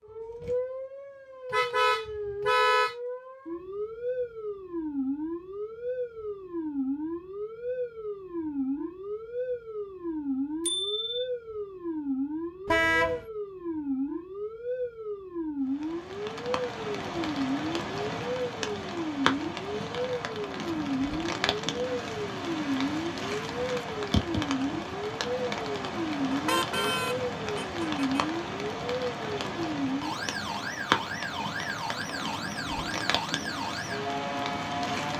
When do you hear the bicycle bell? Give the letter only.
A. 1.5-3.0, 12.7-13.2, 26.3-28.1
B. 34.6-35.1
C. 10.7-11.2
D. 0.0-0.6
C.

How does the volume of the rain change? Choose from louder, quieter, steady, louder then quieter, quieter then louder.
steady.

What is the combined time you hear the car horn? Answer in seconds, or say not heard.
4 s.